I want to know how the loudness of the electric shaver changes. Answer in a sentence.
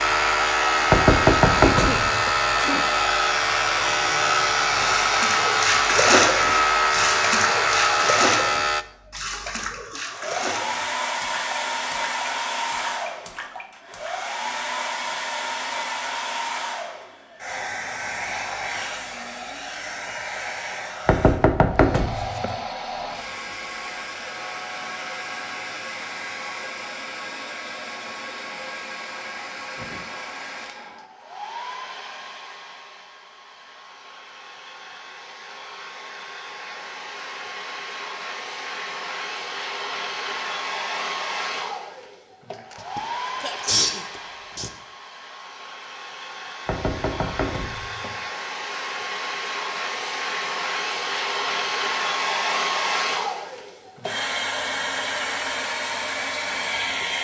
The volume of the electric shaver stays about the same.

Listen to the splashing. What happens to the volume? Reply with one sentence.
The loudness of the splashing goes down.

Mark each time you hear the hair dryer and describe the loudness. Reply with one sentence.
The hair dryer can be heard from 0.0 to 57.2 s, getting quieter then louder.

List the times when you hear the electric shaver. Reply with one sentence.
The electric shaver can be heard from 0.0 to 8.8 s.